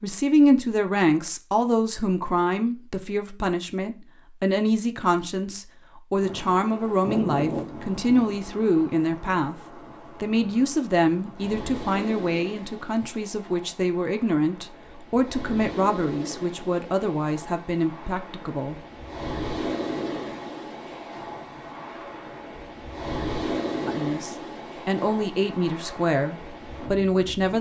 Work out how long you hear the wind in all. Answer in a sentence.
The wind can be heard for 21 seconds in total.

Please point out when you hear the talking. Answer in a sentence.
You can hear the talking from 0.0 to 9.6 s, from 10.2 to 18.8 s and from 23.9 to 27.5 s.